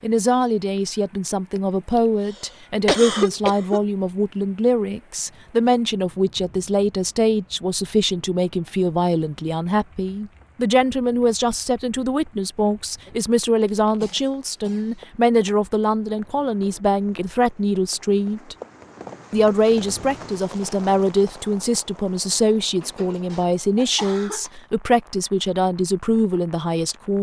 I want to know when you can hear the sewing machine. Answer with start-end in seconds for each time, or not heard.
not heard.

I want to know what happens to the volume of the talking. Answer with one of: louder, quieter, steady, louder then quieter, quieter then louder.
steady.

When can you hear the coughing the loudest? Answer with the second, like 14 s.
3 s.